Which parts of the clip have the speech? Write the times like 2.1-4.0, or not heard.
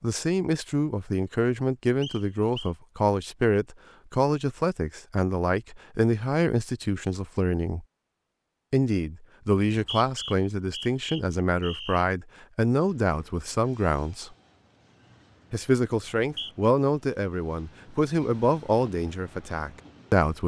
0.0-7.8, 8.7-14.3, 15.5-20.4.